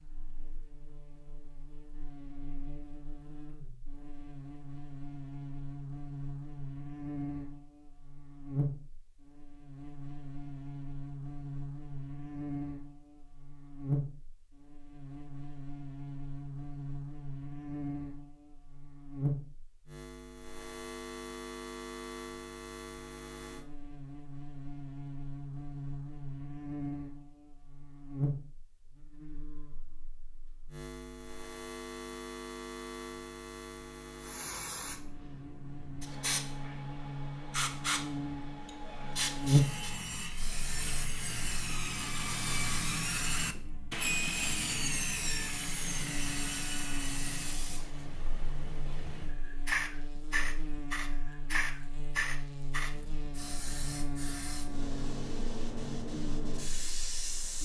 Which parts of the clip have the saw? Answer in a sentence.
The saw can be heard from 39.4 to 47.6 s.